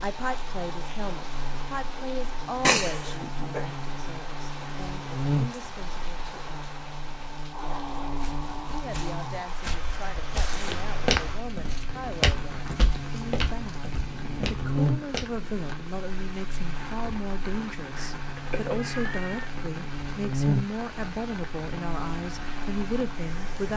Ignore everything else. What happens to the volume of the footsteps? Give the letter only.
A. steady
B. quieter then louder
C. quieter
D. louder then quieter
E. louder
D.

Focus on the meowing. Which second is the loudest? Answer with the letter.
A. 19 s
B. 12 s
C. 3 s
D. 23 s
C.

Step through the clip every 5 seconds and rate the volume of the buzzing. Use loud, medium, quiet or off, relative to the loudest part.
medium, loud, loud, medium, loud.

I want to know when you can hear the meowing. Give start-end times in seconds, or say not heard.
2.6-3.6, 10.7-11.2, 17.9-19.5.